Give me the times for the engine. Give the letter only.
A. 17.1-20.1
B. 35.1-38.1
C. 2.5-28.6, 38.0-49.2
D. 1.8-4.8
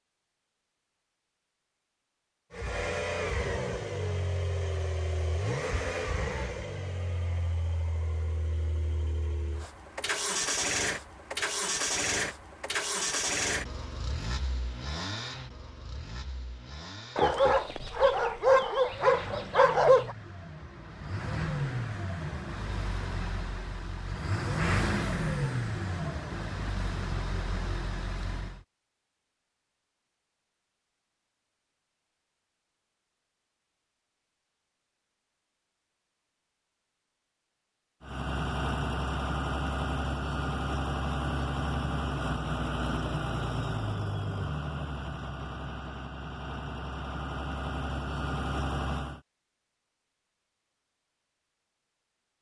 C.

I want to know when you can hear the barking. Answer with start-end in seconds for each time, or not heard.
17.1-20.1.